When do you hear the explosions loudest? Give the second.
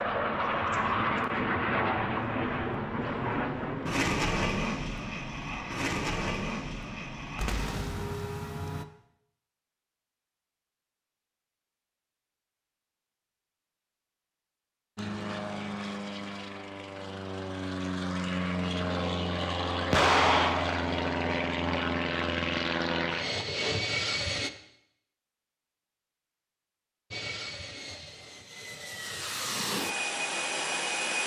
20 s.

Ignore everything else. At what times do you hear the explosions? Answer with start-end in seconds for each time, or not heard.
7.3-8.2, 19.9-20.9.